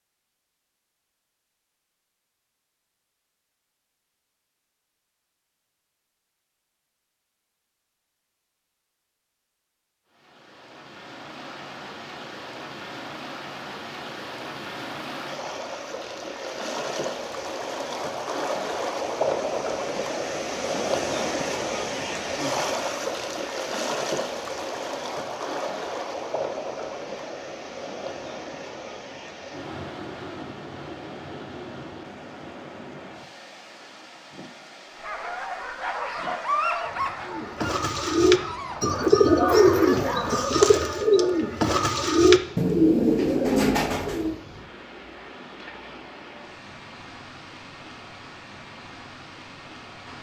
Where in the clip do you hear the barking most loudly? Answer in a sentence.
The volume of the barking peaks at 37 seconds.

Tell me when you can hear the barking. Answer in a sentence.
You can hear the barking from 35.0 to 40.6 s.